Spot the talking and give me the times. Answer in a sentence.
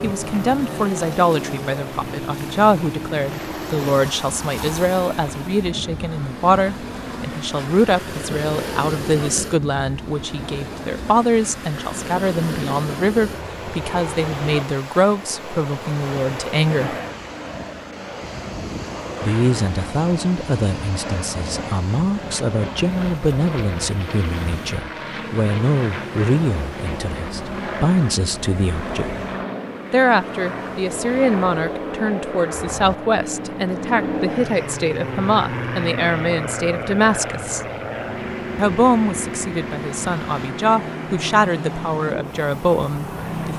You can hear the talking from 0.0 to 16.9 s, from 19.2 to 29.1 s, from 29.9 to 37.6 s and from 38.5 to 43.5 s.